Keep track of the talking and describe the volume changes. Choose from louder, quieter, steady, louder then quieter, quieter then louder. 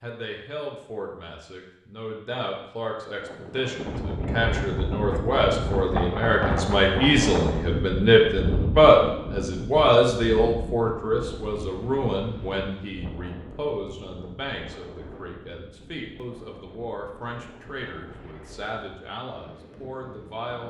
louder then quieter.